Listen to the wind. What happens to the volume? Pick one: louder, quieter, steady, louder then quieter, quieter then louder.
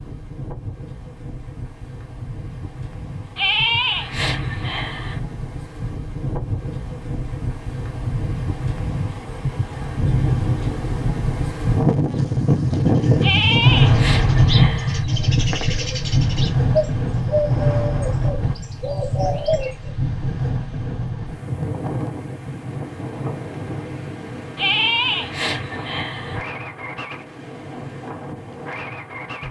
louder then quieter.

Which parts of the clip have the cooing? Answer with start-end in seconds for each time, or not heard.
12.2-19.9.